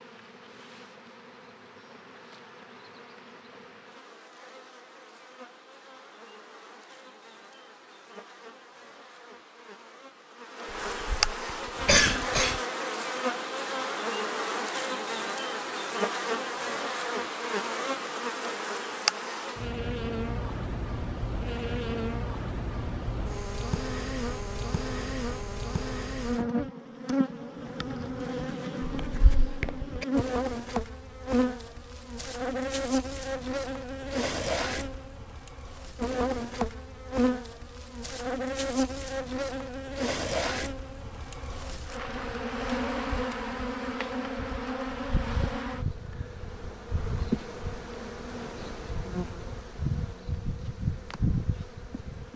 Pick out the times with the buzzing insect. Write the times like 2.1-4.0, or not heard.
0.0-52.3.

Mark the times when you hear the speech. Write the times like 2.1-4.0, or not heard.
not heard.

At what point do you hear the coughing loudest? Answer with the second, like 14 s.
12 s.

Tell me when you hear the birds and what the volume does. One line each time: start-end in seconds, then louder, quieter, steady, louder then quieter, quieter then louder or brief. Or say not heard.
not heard.